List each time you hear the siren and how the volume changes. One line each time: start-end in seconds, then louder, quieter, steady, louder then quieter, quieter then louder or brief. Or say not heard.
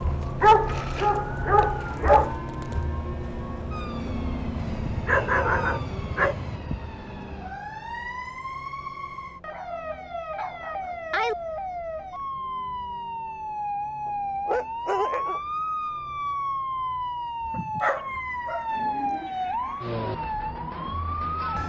0.0-21.6 louder.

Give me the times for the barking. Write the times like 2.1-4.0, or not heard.
0.4-2.4, 4.5-6.6, 9.5-11.3, 14.1-15.4, 17.5-19.3.